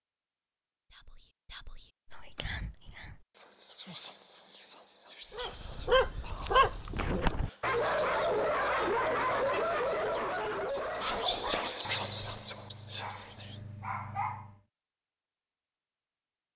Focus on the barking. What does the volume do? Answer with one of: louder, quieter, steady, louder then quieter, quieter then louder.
quieter.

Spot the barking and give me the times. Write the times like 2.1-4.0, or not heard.
5.3-14.6.